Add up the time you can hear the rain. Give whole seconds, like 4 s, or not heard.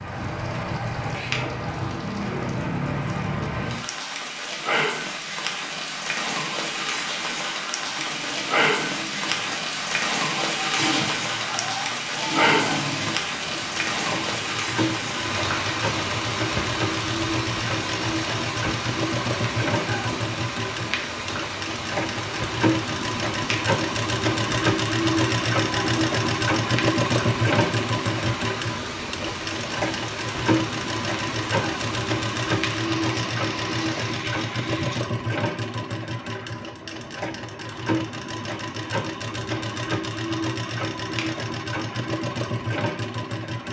35 s.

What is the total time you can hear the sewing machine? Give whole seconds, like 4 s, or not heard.
36 s.